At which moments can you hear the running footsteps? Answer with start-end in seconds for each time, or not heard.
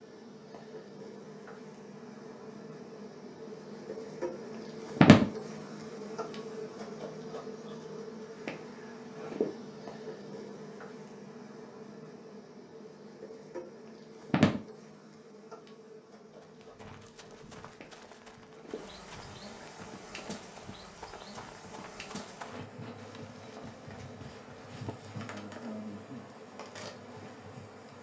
16.4-24.9.